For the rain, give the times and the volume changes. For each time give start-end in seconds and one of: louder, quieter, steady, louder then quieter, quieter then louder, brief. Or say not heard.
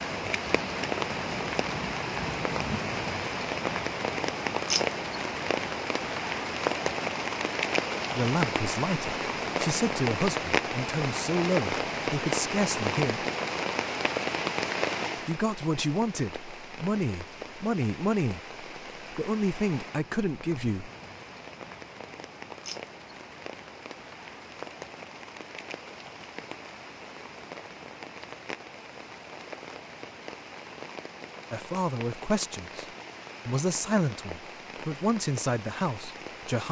0.0-36.6 quieter.